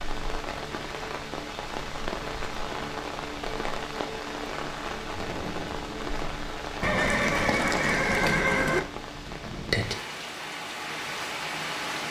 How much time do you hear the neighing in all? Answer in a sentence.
The neighing can be heard for 2 seconds in total.